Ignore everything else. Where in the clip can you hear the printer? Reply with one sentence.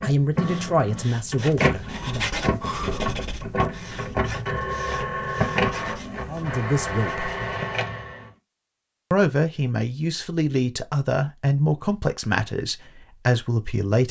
You can hear the printer from 0.0 to 8.3 s.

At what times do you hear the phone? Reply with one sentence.
You can hear the phone from 2.6 to 3.1 s.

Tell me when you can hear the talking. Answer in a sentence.
You can hear the talking from 0.0 to 2.3 s, from 6.2 to 7.3 s and from 9.1 to 14.0 s.